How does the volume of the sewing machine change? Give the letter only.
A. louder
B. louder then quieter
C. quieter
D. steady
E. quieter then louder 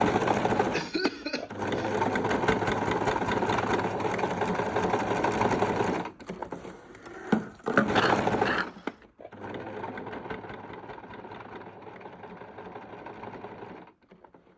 C.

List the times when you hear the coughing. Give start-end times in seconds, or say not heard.
0.7-1.9, 8.0-8.9.